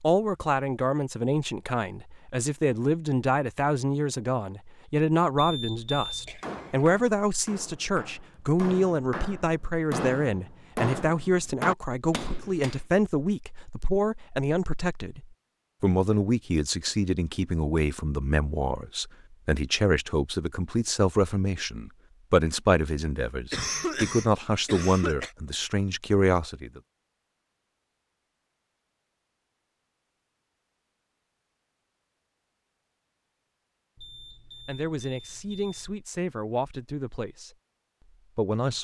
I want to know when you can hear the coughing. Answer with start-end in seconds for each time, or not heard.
6.2-6.9, 23.5-25.3.